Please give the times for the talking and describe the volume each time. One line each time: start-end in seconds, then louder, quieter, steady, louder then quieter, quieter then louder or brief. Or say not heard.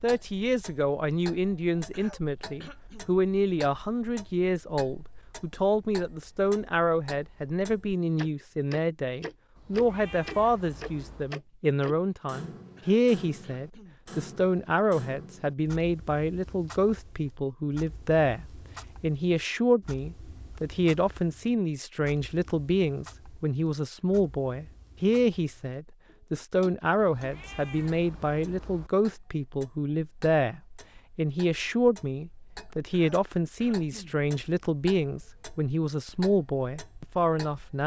0.0-37.8 steady.